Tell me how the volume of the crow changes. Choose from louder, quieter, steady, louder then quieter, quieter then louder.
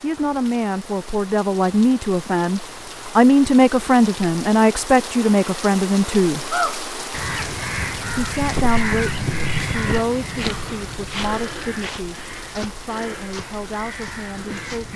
quieter.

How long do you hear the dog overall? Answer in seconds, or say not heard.
not heard.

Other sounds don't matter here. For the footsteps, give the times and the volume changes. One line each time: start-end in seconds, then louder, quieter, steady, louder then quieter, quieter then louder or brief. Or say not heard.
8.3-14.9 quieter.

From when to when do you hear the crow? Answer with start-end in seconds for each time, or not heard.
6.5-14.9.